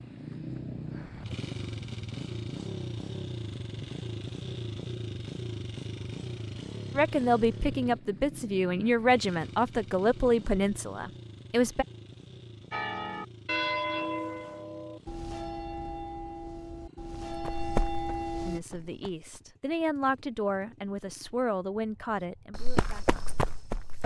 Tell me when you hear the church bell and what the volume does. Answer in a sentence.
You can hear the church bell from 12.7 to 18.6 s, getting quieter then louder.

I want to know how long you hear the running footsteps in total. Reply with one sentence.
The running footsteps can be heard for 4 seconds in total.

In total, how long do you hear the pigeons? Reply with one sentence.
The pigeons can't be heard in this clip.